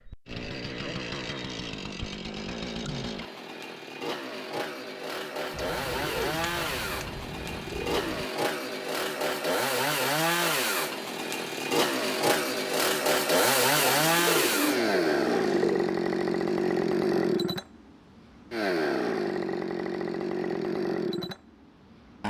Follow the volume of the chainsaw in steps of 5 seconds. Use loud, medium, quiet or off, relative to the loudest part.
medium, medium, loud, loud, medium.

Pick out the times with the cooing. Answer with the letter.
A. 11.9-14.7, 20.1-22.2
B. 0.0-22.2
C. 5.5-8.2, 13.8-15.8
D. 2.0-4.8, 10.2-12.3
C.